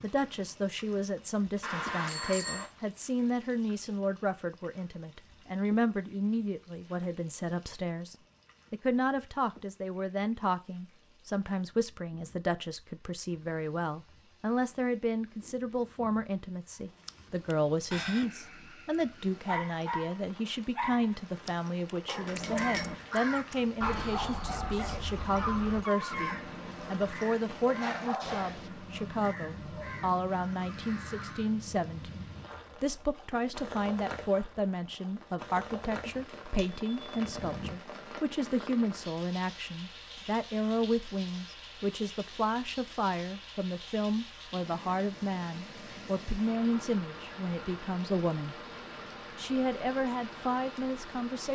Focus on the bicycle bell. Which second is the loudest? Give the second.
2 s.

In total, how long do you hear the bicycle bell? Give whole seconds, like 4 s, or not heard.
4 s.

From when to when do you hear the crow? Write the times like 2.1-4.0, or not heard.
22.1-31.6.